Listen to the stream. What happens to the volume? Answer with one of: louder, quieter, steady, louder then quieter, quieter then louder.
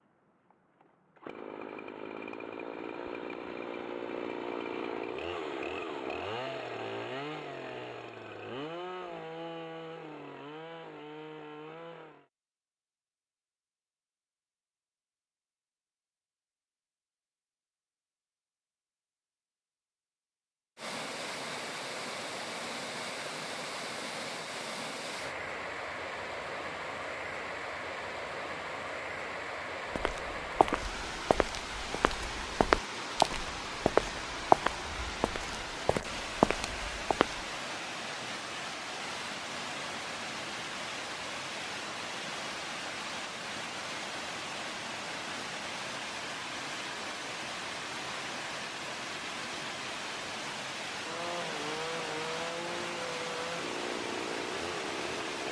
steady.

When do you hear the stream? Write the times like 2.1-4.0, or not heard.
20.8-55.4.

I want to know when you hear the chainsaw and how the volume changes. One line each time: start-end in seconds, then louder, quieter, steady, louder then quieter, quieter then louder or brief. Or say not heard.
0.0-12.2 louder then quieter
51.0-55.4 steady.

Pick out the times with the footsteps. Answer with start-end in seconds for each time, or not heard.
29.9-37.4.